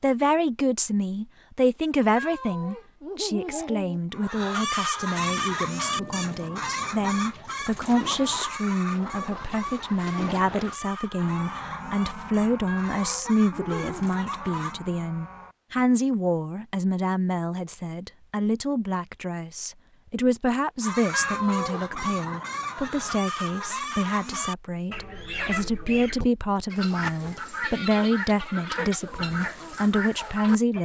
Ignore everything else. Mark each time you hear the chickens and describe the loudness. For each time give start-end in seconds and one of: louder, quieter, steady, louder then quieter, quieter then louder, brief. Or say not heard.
4.1-14.8 quieter
20.8-30.8 steady.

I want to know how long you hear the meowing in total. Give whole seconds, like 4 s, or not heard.
4 s.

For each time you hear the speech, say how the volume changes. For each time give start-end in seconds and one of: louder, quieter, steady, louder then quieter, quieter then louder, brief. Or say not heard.
0.0-30.8 steady.